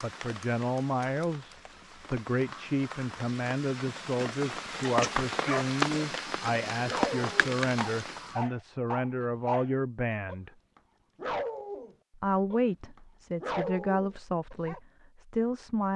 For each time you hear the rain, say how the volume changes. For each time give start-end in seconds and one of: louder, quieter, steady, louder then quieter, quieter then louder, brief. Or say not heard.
0.0-8.5 louder.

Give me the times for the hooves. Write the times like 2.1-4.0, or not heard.
not heard.